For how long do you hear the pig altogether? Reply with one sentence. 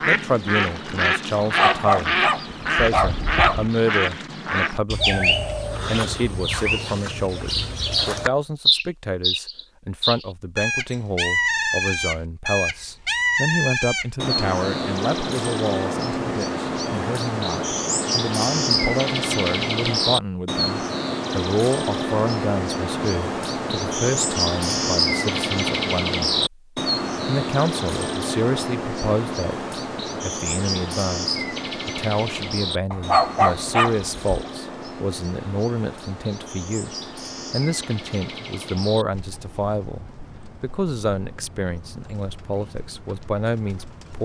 The pig can't be heard in this clip.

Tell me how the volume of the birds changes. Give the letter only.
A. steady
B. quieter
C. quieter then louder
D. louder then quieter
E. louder
B.